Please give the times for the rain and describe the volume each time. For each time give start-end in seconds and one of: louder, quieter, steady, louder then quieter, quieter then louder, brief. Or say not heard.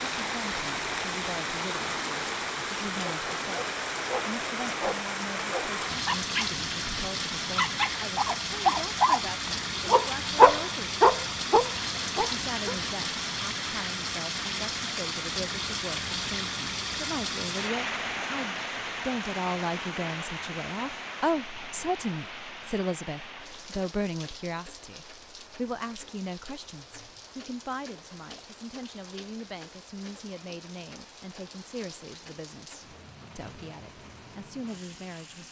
0.0-35.4 quieter.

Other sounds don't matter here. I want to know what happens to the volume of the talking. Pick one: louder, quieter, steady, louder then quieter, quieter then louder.
louder then quieter.